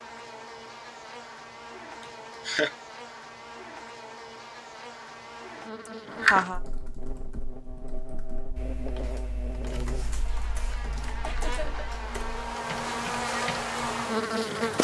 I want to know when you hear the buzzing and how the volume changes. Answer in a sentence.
The buzzing can be heard from 0.0 to 14.7 s, getting louder.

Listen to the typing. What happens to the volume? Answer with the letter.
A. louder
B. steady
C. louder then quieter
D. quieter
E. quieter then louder
A.